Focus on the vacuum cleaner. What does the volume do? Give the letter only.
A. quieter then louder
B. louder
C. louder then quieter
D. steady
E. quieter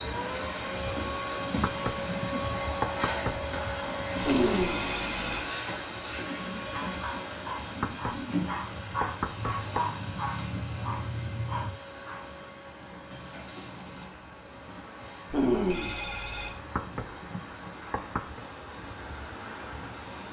E.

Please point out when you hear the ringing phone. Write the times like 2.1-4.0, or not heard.
4.2-5.5, 15.3-16.5.